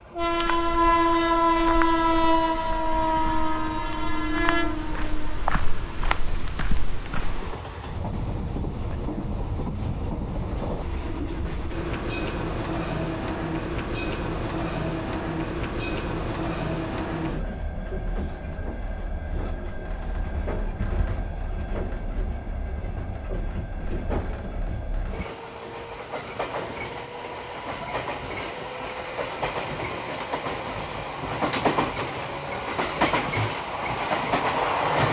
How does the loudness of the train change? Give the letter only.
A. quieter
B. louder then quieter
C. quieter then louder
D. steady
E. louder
C.